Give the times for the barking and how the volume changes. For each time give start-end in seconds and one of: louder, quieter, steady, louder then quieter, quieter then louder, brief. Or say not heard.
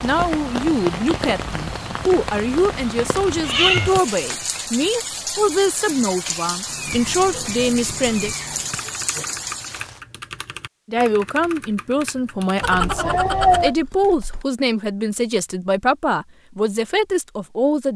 not heard.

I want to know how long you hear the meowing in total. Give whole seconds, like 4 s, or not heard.
4 s.